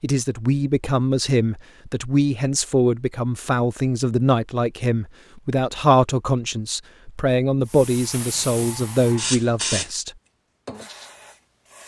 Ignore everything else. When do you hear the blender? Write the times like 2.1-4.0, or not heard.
not heard.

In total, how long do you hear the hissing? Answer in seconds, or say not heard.
4 s.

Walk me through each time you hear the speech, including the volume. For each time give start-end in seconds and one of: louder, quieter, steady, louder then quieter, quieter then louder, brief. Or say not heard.
0.0-10.1 steady.